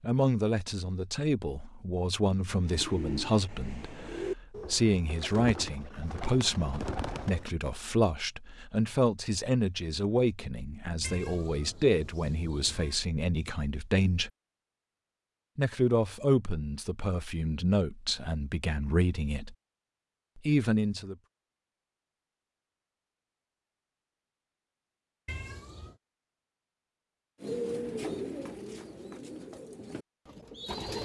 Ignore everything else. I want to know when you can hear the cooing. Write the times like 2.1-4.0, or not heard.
2.6-7.5, 27.4-31.0.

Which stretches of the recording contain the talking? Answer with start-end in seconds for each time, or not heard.
0.0-14.3, 15.6-19.6, 20.4-21.1.